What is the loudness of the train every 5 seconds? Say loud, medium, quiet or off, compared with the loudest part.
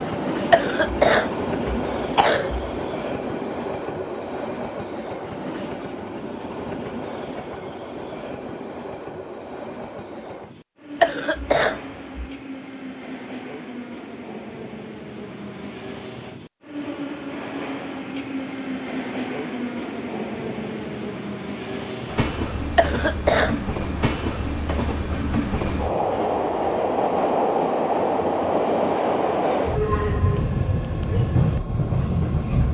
medium, medium, quiet, medium, medium, loud, loud.